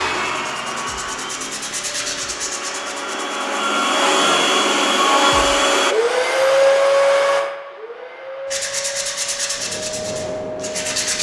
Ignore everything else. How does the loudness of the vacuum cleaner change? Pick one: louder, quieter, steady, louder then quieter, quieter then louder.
louder then quieter.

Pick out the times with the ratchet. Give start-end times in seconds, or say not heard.
not heard.